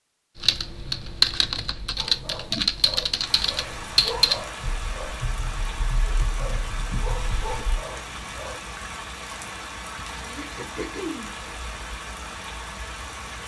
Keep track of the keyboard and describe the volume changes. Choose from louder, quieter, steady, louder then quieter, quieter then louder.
quieter.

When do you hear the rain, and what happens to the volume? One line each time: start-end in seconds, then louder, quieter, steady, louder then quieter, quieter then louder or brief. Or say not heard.
3.1-13.4 steady.